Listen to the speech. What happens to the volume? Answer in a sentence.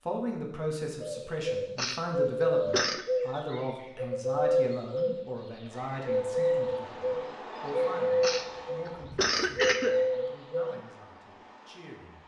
The volume of the speech goes down.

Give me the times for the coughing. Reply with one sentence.
The coughing can be heard from 1.8 to 3.0 s and from 8.2 to 9.9 s.